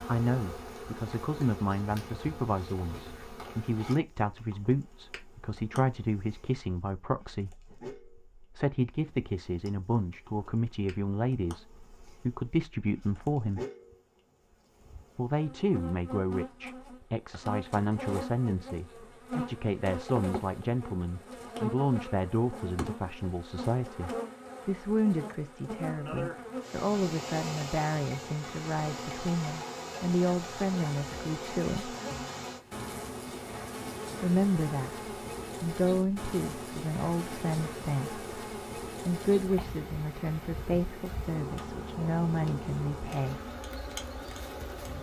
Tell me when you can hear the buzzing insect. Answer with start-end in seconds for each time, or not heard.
0.0-44.9.